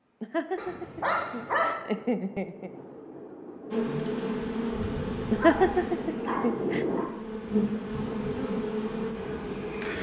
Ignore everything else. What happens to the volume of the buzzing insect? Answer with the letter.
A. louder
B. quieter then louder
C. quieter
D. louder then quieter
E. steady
B.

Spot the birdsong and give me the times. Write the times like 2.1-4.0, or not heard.
not heard.